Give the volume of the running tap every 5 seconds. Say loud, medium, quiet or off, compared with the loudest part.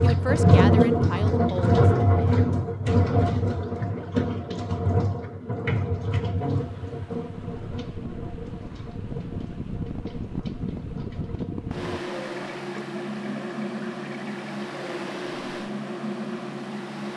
loud, medium, quiet, off.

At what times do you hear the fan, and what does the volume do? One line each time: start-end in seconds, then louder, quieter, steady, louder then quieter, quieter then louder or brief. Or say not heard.
6.3-17.1 louder.